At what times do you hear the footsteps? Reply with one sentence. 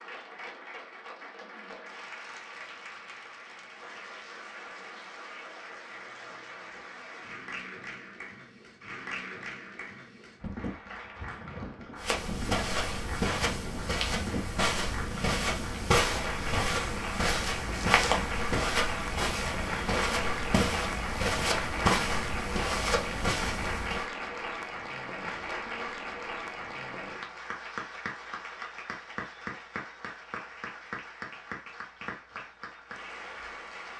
The footsteps can be heard from 11.9 to 24.1 s.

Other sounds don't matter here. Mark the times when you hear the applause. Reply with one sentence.
The applause can be heard from 0.0 to 33.9 s.